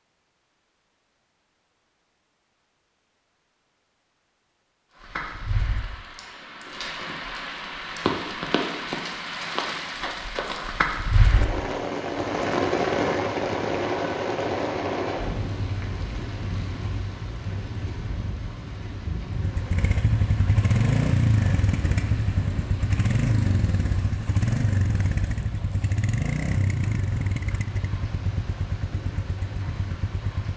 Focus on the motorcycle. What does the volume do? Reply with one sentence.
The loudness of the motorcycle goes down.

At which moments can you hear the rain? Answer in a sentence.
You can hear the rain from 5.0 to 30.5 s.